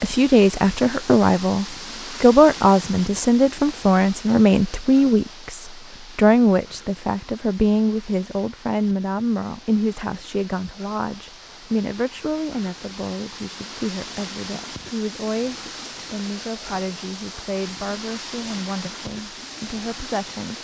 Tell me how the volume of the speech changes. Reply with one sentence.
The loudness of the speech goes down.